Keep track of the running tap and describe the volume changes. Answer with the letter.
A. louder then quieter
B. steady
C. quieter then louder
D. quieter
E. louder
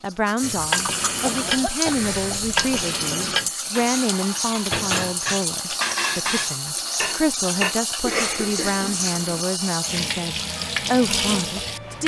B.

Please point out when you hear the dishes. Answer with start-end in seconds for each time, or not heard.
0.4-7.8.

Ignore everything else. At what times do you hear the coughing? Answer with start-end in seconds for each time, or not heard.
1.2-2.8, 8.0-9.4.